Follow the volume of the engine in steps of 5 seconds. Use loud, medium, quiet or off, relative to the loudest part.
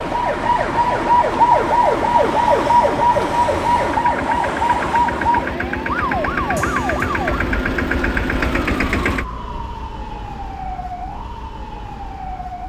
medium, loud, off.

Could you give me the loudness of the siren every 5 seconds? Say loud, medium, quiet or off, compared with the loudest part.
loud, medium, quiet.